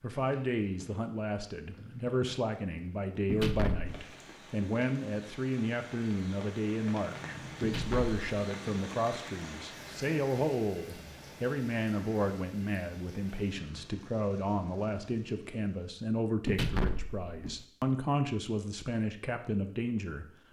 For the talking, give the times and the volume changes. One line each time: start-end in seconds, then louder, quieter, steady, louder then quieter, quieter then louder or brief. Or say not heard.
0.0-20.2 steady.